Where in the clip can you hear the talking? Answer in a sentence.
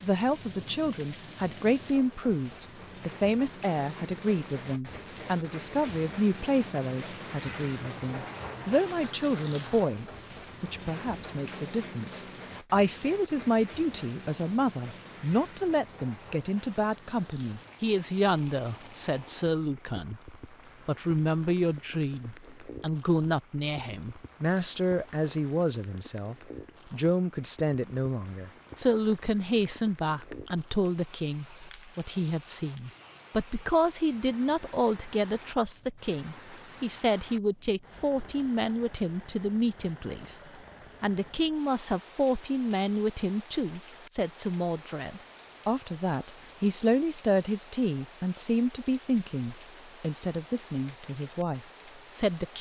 You can hear the talking from 0.0 to 40.4 s and from 41.0 to 52.5 s.